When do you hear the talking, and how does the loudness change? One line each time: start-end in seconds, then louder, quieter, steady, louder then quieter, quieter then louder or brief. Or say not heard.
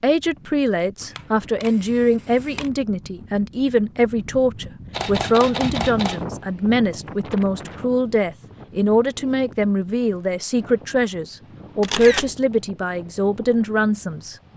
0.0-14.3 steady.